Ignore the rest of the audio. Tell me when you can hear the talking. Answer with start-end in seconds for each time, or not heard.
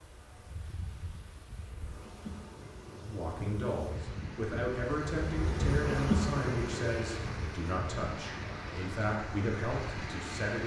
3.0-10.6.